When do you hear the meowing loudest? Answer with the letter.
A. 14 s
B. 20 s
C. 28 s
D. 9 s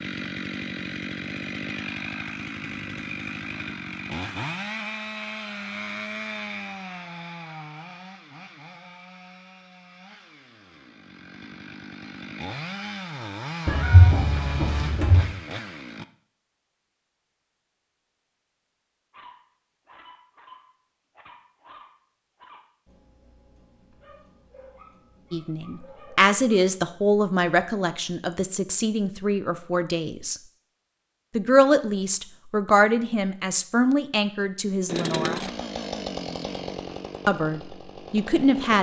A.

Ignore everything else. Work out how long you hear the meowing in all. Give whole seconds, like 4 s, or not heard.
2 s.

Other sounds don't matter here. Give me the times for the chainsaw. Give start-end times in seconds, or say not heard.
0.0-16.1, 34.9-38.7.